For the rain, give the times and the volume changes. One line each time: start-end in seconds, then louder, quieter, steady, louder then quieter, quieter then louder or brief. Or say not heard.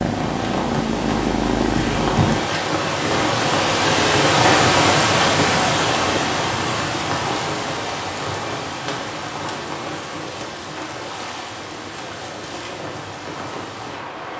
0.0-14.3 louder then quieter.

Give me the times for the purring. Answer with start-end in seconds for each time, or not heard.
0.0-2.4.